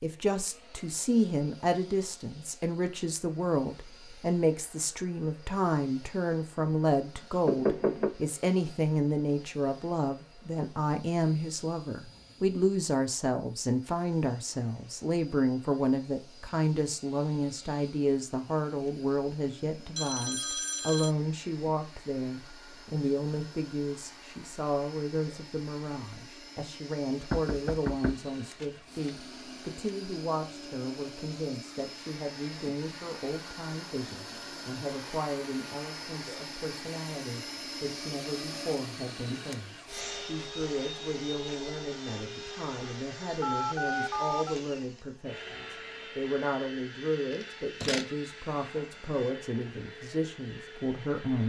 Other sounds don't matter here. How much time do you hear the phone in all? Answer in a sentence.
You can hear the phone for 2 seconds altogether.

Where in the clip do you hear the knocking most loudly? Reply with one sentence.
The loudest moment of the knocking is at 8 seconds.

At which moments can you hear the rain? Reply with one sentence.
The rain can't be heard in this clip.